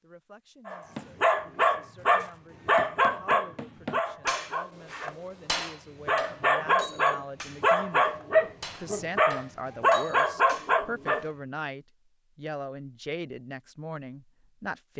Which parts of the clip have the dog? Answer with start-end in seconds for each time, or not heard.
0.7-11.2.